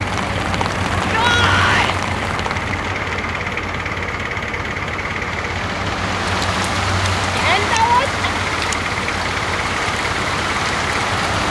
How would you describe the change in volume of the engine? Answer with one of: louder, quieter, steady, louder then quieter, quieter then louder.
steady.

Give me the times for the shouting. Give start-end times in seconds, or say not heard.
1.1-1.9, 7.3-8.2.